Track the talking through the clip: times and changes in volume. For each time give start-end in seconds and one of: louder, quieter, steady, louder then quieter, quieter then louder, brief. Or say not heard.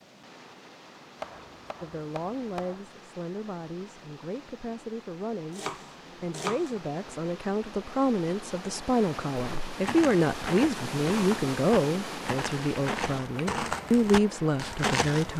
1.8-15.3 louder.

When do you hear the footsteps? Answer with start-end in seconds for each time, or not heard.
9.3-15.3.